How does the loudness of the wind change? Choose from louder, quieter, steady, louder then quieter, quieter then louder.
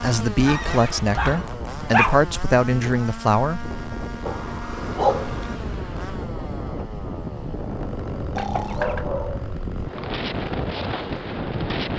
louder.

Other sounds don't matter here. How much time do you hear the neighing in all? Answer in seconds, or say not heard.
2 s.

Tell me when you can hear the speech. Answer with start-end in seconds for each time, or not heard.
0.0-3.6.